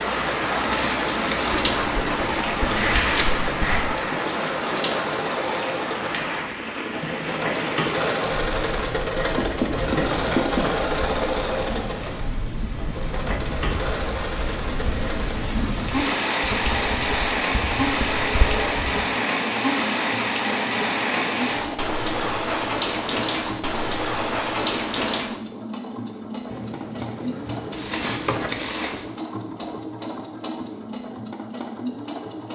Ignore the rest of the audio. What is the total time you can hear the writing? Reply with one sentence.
You can hear the writing for 8 seconds altogether.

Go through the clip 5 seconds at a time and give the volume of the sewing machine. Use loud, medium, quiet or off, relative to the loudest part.
medium, loud, loud, medium, medium, medium, medium.